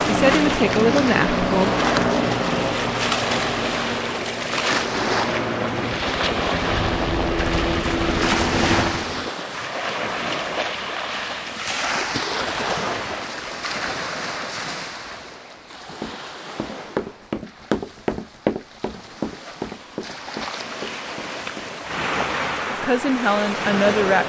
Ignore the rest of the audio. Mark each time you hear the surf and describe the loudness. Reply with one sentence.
The surf can be heard from 0.0 to 24.2 s, getting quieter then louder.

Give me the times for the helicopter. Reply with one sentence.
You can hear the helicopter from 0.0 to 9.3 s.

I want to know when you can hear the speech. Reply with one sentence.
You can hear the speech from 0.1 to 1.8 s and from 22.7 to 24.2 s.